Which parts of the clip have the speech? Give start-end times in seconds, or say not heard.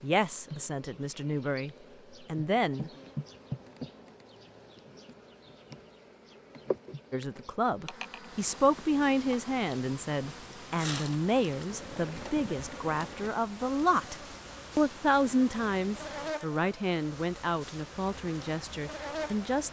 0.0-2.9, 7.1-14.2, 14.8-19.6.